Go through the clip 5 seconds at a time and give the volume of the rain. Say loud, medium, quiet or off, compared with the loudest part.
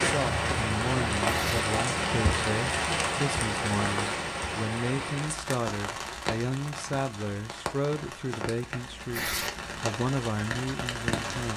loud, medium, medium.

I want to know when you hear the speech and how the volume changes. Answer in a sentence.
The speech can be heard from 0.1 to 11.5 s, at a steady volume.